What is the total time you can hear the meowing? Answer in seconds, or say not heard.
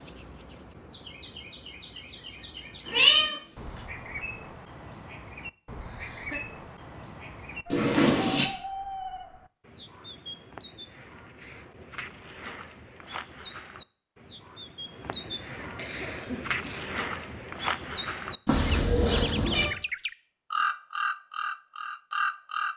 3 s.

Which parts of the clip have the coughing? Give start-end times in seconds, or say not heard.
5.8-6.4, 15.1-16.9.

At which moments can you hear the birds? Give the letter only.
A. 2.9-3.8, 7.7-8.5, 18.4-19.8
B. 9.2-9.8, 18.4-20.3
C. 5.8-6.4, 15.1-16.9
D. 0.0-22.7
D.